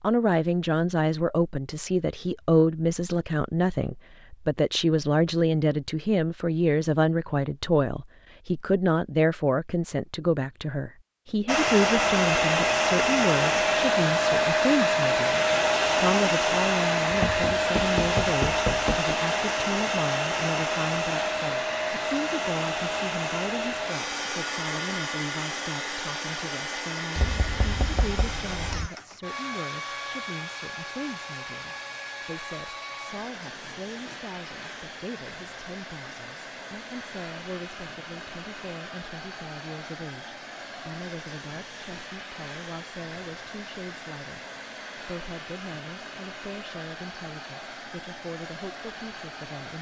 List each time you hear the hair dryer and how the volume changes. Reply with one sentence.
The hair dryer can be heard from 11.4 to 49.7 s, getting quieter.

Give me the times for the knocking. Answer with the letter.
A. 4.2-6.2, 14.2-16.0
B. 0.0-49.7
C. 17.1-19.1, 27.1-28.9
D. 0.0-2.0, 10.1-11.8
C.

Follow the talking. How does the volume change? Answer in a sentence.
The loudness of the talking goes down.